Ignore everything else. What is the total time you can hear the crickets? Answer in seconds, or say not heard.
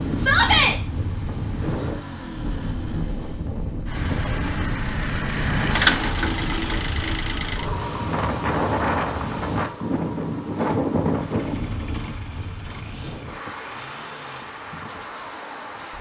not heard.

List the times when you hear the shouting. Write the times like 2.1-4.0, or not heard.
0.1-0.8.